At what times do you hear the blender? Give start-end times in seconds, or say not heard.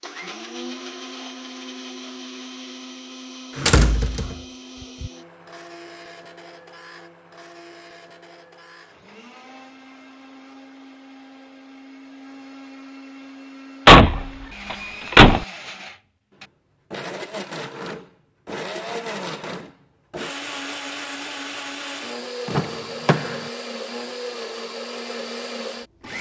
0.0-26.1.